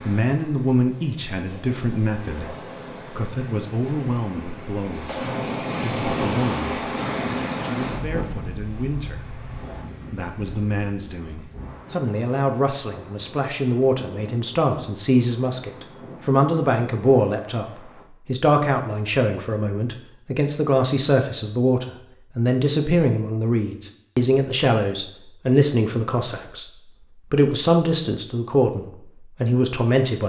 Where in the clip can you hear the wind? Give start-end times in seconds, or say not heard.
0.0-18.1.